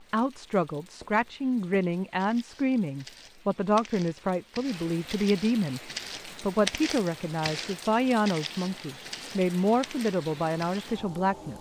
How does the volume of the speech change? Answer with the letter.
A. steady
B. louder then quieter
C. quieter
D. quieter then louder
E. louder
A.